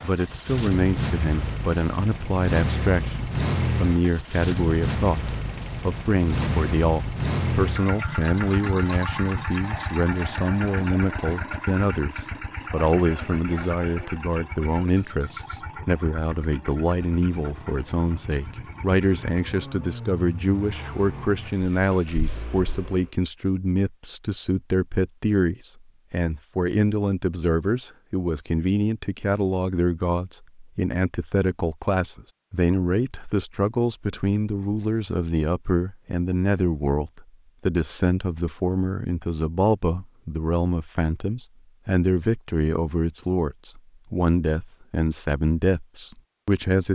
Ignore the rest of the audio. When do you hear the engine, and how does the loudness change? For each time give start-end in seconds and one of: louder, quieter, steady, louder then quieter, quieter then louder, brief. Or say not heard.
0.0-23.1 quieter.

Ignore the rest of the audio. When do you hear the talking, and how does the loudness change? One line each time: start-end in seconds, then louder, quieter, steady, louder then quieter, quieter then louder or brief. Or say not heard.
0.0-46.9 steady.